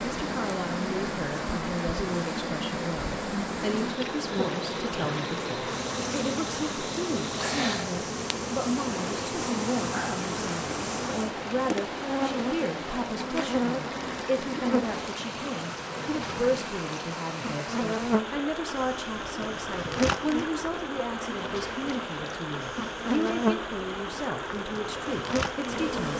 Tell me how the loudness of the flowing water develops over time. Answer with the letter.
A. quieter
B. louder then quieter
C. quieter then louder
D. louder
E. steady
E.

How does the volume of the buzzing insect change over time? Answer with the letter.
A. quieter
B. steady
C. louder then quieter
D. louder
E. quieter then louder
B.